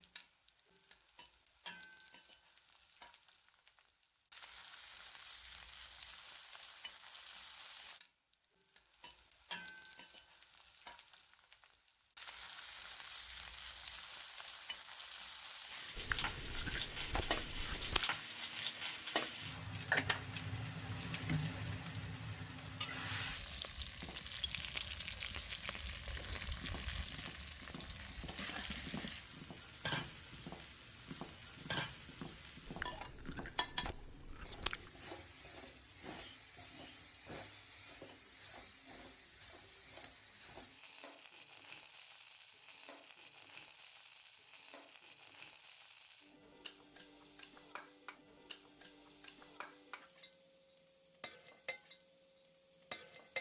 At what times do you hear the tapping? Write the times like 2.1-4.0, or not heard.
23.9-33.9.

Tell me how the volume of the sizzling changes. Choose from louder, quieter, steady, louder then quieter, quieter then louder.
louder then quieter.